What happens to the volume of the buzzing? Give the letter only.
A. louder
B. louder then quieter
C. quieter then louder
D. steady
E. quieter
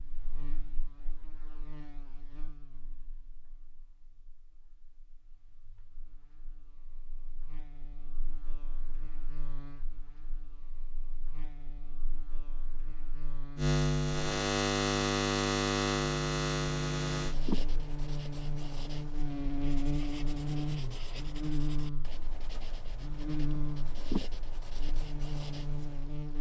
B.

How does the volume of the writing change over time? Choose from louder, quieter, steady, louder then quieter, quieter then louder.
louder.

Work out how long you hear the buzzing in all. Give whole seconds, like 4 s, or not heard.
26 s.